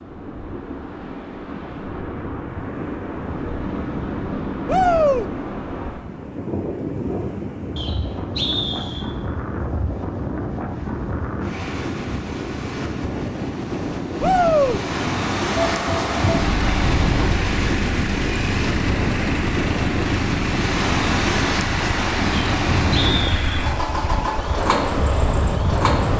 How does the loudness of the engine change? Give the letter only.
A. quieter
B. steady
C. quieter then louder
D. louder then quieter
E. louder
B.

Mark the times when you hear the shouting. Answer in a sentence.
You can hear the shouting from 4.7 to 5.2 s and from 14.2 to 14.8 s.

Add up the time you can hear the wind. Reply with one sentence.
You can hear the wind for 26 seconds altogether.